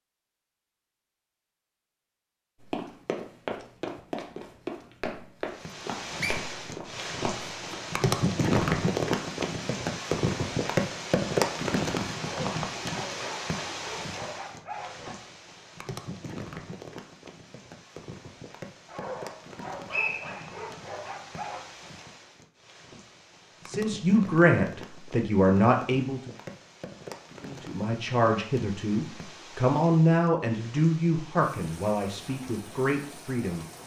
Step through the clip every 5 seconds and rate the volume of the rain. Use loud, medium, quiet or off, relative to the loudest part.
off, loud, loud, quiet, quiet, quiet, quiet.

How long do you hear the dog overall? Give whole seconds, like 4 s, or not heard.
6 s.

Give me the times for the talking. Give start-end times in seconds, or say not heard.
23.6-26.2, 27.4-33.6.